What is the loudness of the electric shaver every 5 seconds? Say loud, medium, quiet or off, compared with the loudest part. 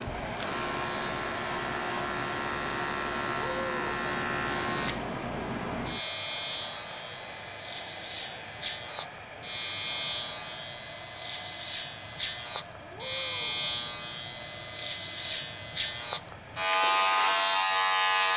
medium, medium, medium, loud.